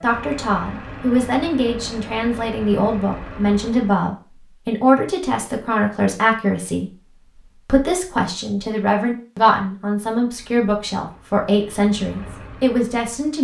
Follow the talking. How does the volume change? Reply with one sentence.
The volume of the talking stays about the same.